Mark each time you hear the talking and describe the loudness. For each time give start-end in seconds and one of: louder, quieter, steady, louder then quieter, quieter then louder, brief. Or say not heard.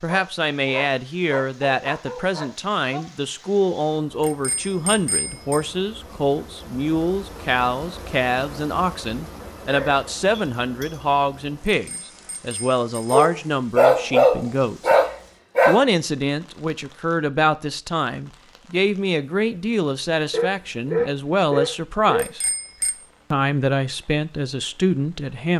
0.0-14.9 steady
15.7-22.4 steady
23.3-25.5 brief.